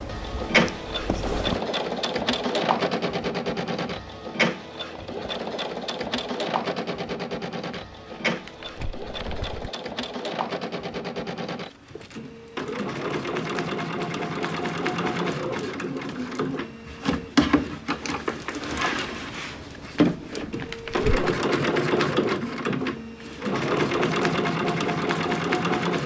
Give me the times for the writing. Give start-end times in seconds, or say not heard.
0.0-1.6.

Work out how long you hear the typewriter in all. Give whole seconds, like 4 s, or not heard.
not heard.